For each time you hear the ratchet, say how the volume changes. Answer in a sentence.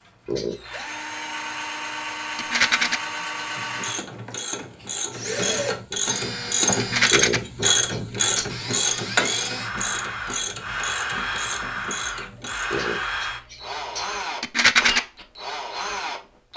You can hear the ratchet from 3.5 to 12.8 s, getting louder then quieter.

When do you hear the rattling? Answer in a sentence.
The rattling can be heard from 2.4 to 3.0 s, from 6.8 to 7.4 s and from 14.4 to 15.0 s.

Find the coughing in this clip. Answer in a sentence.
You can hear the coughing from 0.2 to 0.8 s, from 7.1 to 8.6 s and from 12.7 to 14.1 s.